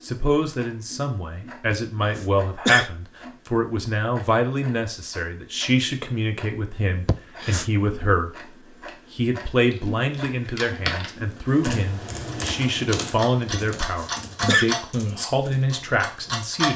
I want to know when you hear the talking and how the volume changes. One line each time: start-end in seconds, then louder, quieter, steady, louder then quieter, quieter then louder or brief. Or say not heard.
0.0-16.7 steady.